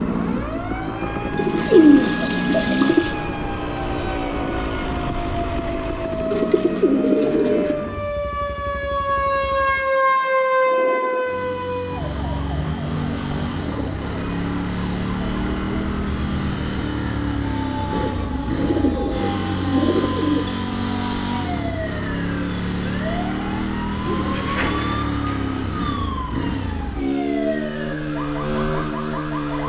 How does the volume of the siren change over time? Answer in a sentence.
The loudness of the siren goes up, then down.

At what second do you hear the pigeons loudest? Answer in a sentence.
The loudest moment of the pigeons is at 2 seconds.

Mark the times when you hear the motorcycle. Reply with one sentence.
The motorcycle can be heard from 0.0 to 29.6 s.